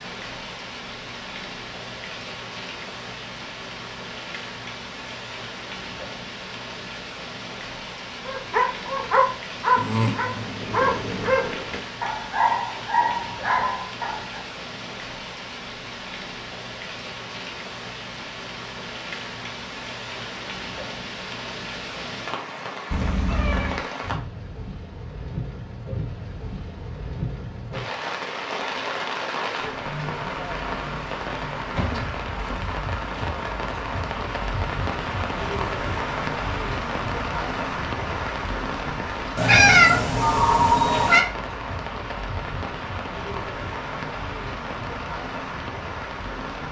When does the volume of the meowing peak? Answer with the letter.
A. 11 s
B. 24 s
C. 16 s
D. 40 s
D.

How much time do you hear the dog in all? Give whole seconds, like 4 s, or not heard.
6 s.